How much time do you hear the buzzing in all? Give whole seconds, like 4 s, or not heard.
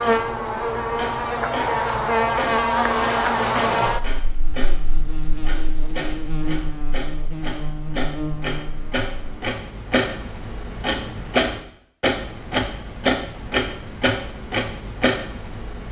9 s.